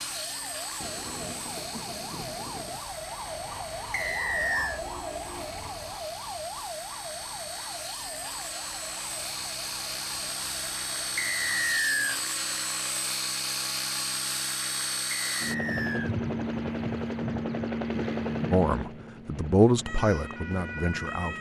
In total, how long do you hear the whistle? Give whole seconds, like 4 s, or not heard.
3 s.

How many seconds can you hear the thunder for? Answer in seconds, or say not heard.
2 s.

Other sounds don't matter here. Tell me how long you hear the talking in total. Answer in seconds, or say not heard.
3 s.